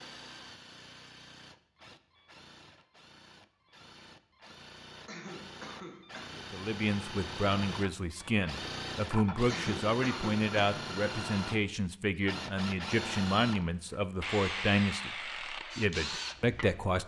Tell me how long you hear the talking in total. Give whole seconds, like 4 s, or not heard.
11 s.